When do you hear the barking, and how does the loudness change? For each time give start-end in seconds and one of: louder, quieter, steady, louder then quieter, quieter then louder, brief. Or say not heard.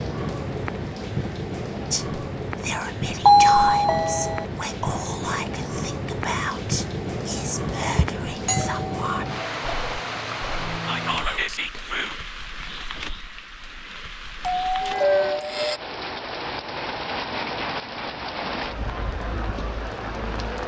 not heard.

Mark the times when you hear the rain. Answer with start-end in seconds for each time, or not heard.
0.0-20.6.